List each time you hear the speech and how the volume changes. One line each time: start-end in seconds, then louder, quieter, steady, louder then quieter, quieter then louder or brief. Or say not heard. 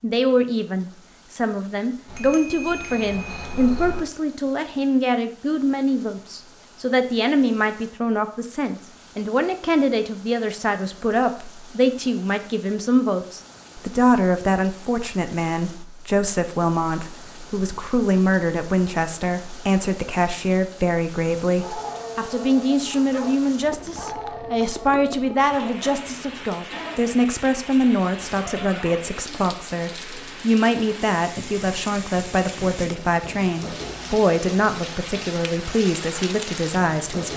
0.0-37.3 steady.